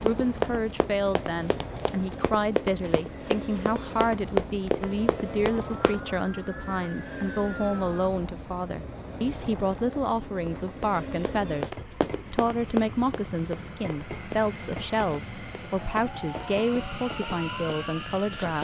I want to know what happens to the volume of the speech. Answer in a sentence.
The loudness of the speech stays about the same.